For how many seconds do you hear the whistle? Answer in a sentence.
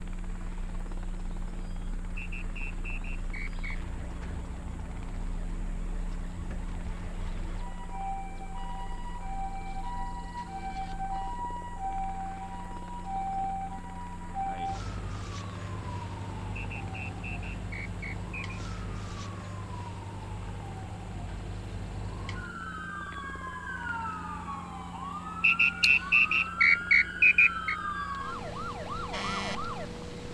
The whistle can be heard for 6 seconds in total.